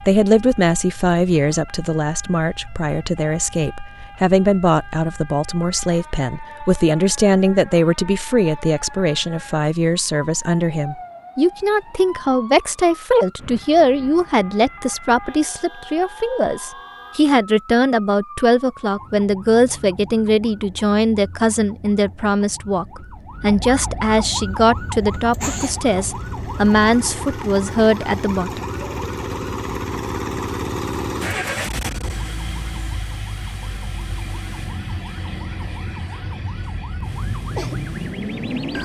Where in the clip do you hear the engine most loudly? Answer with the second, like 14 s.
31 s.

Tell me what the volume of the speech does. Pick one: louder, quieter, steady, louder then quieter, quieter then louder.
steady.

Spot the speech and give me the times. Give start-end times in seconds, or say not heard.
0.0-28.6.